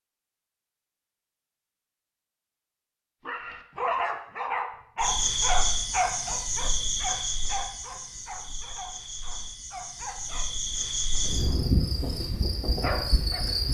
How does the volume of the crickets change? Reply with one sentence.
The loudness of the crickets goes down, then up.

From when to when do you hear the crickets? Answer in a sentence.
You can hear the crickets from 5.0 to 13.6 s.